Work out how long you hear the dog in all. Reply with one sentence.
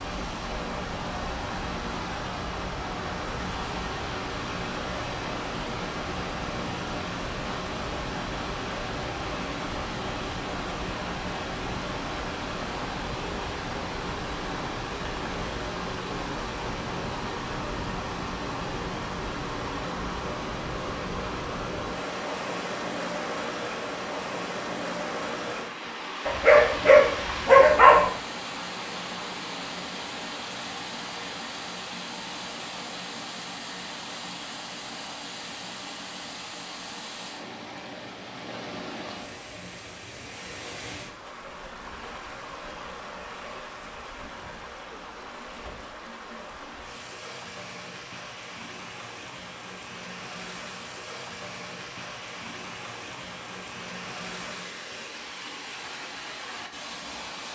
The dog can be heard for 2 seconds in total.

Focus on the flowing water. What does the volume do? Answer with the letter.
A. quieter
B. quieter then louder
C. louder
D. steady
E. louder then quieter
A.